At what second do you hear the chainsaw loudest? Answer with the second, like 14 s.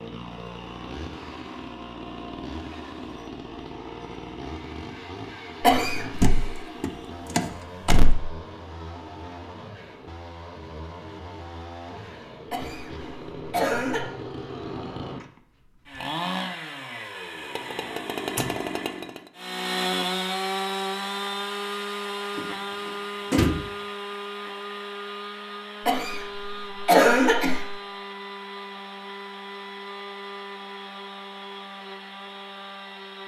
20 s.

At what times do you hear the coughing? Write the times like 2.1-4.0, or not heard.
5.6-6.3, 12.5-14.1, 25.9-27.7.